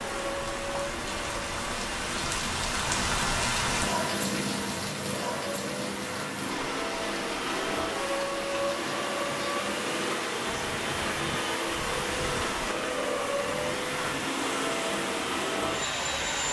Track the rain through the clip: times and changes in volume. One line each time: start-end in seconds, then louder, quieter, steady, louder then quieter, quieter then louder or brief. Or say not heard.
0.0-16.4 quieter.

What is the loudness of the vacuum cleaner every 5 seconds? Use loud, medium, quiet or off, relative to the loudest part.
medium, loud, loud, loud.